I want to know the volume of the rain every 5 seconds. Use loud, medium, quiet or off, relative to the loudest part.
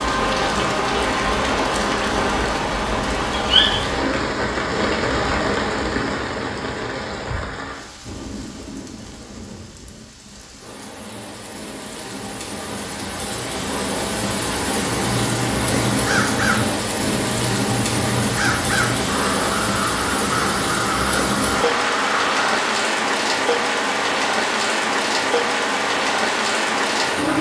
loud, medium, medium, loud, loud, loud.